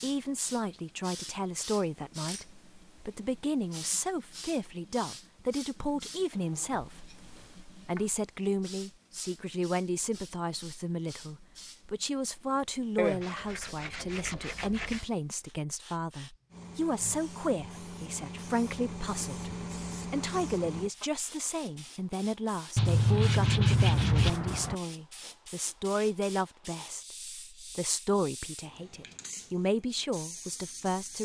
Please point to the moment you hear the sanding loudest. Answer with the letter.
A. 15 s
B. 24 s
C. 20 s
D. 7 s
B.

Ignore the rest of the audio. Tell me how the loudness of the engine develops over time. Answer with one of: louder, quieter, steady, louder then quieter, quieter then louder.
louder.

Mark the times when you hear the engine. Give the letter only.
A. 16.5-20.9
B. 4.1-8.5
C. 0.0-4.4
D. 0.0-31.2
A.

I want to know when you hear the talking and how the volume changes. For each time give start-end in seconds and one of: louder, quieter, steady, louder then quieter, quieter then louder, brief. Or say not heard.
0.0-31.2 steady.